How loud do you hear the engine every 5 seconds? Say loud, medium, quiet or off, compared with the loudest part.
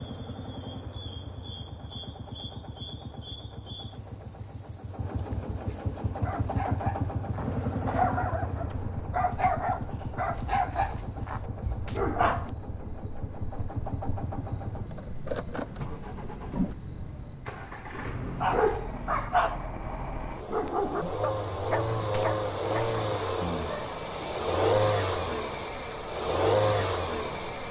quiet, medium, medium, medium, loud, loud.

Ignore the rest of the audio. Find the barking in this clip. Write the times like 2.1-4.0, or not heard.
6.0-12.5, 18.4-23.9.